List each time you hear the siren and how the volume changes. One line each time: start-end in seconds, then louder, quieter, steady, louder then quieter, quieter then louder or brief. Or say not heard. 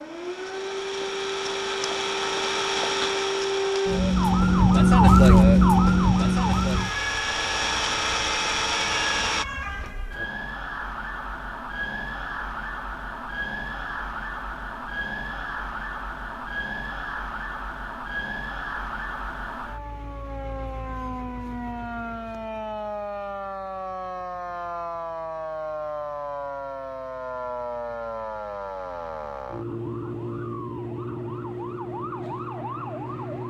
0.0-33.4 quieter.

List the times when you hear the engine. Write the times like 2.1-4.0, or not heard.
0.1-9.4.